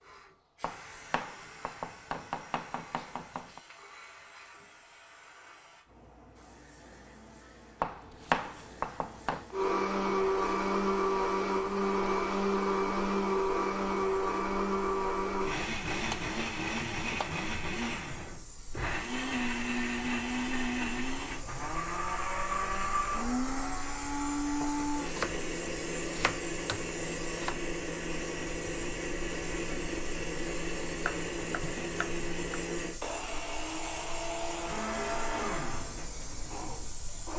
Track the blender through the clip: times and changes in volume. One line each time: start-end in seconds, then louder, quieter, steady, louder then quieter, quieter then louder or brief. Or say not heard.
9.5-37.3 quieter.